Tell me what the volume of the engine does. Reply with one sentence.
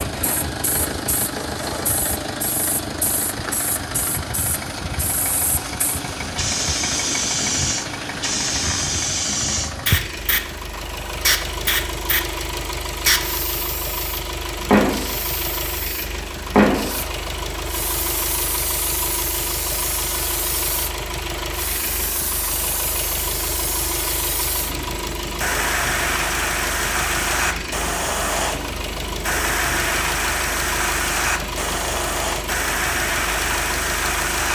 The volume of the engine stays about the same.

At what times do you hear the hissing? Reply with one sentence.
You can hear the hissing from 0.0 to 34.4 s.